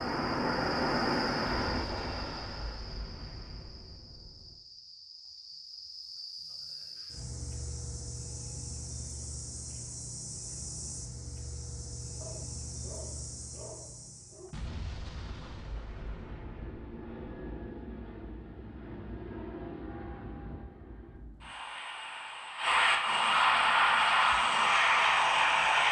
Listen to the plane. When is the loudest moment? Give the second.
24 s.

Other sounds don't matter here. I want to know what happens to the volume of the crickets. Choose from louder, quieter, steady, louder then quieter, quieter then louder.
quieter then louder.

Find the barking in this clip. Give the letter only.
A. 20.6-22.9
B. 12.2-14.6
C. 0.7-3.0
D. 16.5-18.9
B.